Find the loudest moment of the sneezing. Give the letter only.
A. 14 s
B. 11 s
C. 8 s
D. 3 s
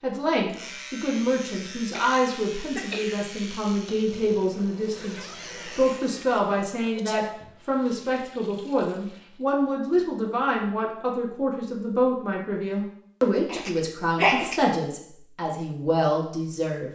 A.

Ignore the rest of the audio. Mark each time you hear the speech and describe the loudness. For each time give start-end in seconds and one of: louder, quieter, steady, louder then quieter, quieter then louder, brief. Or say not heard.
0.0-16.9 steady.